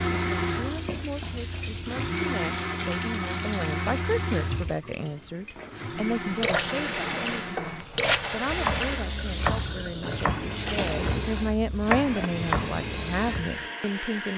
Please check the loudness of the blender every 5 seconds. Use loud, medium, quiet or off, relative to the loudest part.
loud, medium, medium.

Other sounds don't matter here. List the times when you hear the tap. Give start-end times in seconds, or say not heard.
0.0-11.6.